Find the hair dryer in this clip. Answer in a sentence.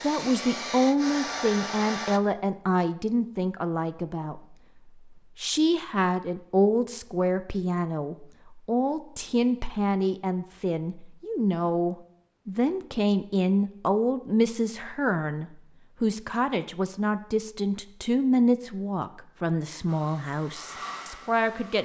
You can hear the hair dryer from 0.0 to 2.2 s and from 19.9 to 21.8 s.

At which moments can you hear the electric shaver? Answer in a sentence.
The electric shaver can't be heard in this clip.